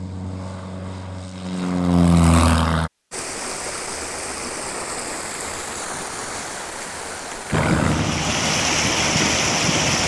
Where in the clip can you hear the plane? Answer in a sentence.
You can hear the plane from 0.0 to 2.9 s and from 7.5 to 10.0 s.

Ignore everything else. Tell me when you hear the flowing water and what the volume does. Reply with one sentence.
The flowing water can be heard from 3.1 to 10.0 s, getting louder.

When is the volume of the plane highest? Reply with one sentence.
The loudest moment of the plane is at 2 seconds.